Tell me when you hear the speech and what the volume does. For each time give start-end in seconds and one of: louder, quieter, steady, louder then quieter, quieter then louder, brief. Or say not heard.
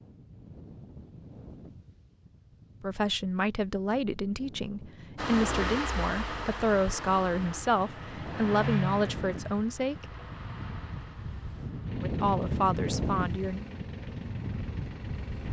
2.8-10.1 steady
12.0-13.7 brief.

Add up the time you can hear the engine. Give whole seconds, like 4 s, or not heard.
10 s.